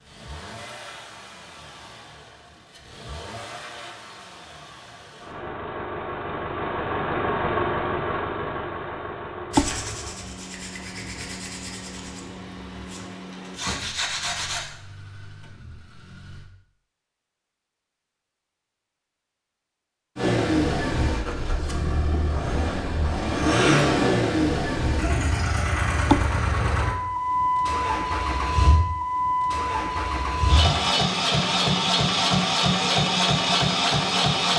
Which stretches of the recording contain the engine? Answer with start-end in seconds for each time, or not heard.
0.0-16.5, 20.1-34.5.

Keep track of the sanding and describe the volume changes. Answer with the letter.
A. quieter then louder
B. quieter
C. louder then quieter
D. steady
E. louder
A.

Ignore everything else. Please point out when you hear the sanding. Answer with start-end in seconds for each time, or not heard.
9.5-14.7.